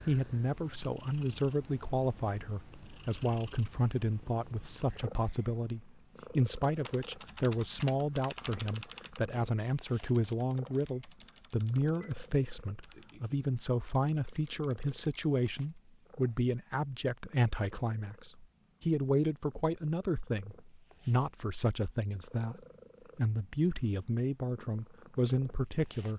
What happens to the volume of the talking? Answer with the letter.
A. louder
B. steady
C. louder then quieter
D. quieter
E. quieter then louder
B.